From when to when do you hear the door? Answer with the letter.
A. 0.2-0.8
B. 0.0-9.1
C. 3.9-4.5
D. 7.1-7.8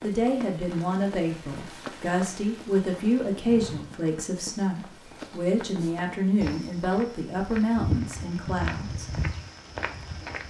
C.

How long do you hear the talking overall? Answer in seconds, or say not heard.
9 s.